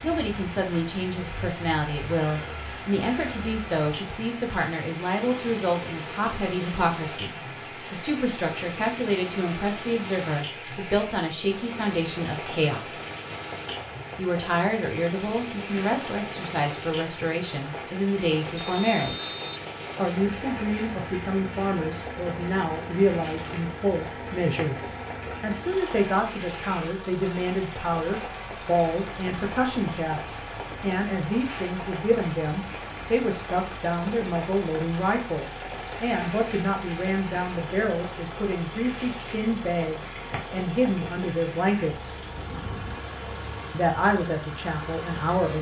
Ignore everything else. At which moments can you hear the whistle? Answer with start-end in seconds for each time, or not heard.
18.6-19.6.